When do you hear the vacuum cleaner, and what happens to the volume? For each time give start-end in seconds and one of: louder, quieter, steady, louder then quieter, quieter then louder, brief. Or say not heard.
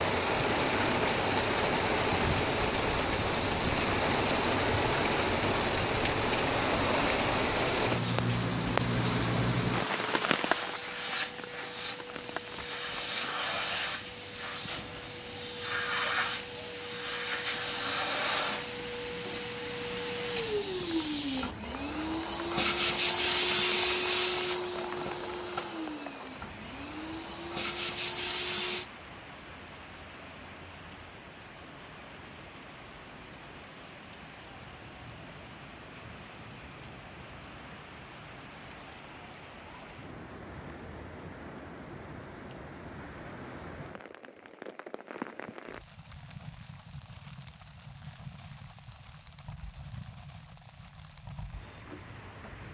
8.8-28.9 louder then quieter.